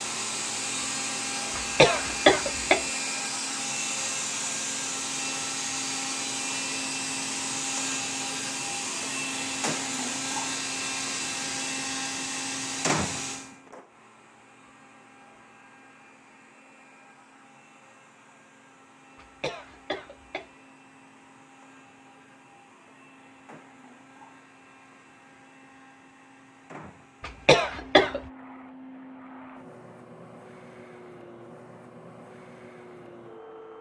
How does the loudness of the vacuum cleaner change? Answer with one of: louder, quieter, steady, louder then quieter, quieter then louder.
quieter then louder.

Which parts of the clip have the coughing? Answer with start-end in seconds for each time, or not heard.
1.6-2.9, 19.1-20.4, 27.2-28.2.